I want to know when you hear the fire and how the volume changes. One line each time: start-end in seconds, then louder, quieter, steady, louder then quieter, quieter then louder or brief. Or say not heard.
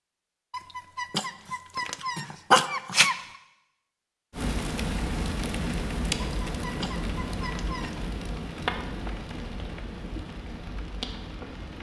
4.3-11.7 quieter.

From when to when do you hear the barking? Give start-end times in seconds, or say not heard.
0.5-3.1, 6.5-8.0.